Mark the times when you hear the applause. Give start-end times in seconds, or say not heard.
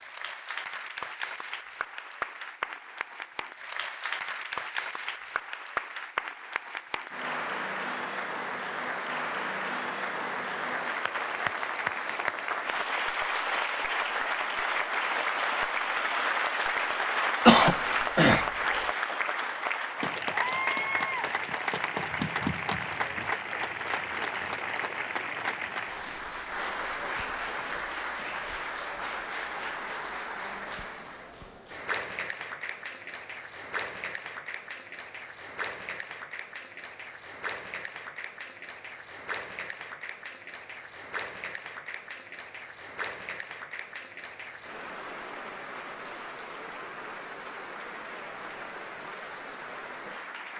0.0-50.5.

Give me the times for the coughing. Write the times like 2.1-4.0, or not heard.
17.4-18.9.